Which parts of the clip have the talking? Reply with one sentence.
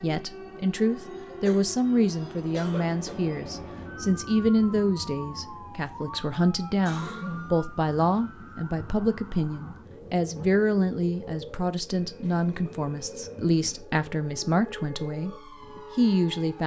You can hear the talking from 0.0 to 15.3 s and from 15.9 to 16.6 s.